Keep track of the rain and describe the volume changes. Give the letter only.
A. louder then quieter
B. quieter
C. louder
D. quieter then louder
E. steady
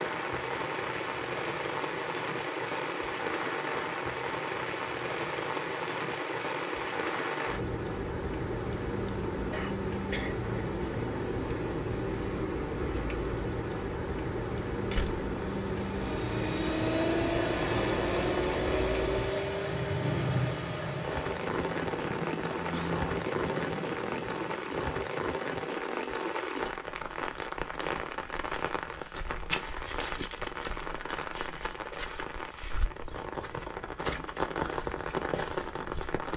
E.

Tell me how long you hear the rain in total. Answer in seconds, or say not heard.
36 s.